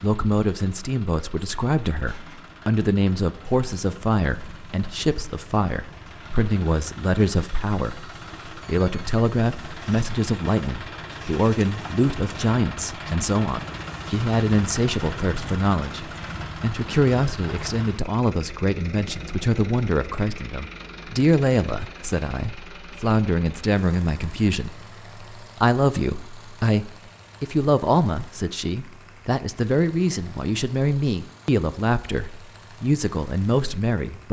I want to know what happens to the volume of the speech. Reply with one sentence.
The volume of the speech stays about the same.